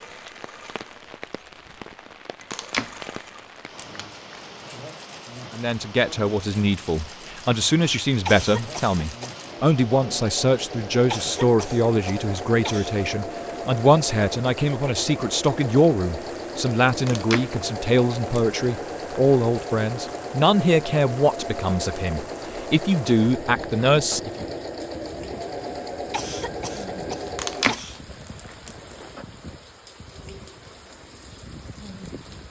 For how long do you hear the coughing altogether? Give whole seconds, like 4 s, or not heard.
5 s.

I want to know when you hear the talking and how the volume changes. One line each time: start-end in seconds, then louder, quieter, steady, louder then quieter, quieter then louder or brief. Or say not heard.
5.5-24.4 steady.